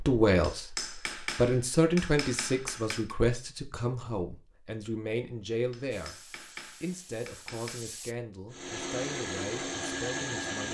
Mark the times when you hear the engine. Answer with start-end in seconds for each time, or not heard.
8.5-10.6.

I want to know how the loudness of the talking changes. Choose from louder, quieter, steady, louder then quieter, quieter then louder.
quieter.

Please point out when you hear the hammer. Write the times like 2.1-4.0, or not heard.
0.4-3.1, 5.7-7.8.